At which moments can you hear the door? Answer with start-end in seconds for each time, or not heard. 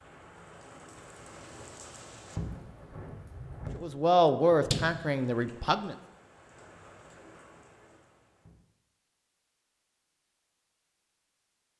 4.2-5.5.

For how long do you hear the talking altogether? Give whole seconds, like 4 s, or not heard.
2 s.